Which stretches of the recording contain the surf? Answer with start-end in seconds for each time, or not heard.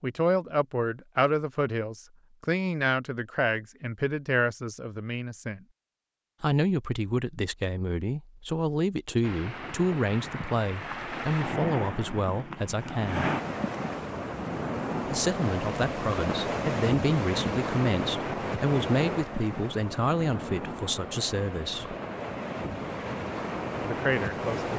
9.2-24.7.